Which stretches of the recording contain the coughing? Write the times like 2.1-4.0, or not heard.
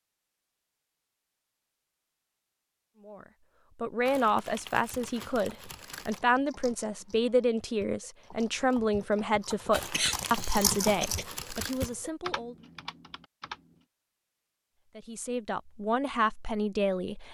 9.7-11.2.